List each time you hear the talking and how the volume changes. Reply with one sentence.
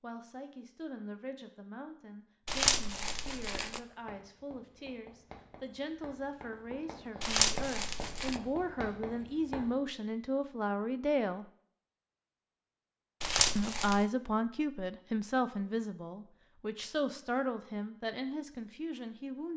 You can hear the talking from 0.0 to 11.4 s, getting louder; and from 13.6 to 19.5 s, getting quieter.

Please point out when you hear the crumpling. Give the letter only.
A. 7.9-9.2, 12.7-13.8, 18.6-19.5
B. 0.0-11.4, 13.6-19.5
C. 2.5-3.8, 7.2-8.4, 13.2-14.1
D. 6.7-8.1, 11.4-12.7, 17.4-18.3
C.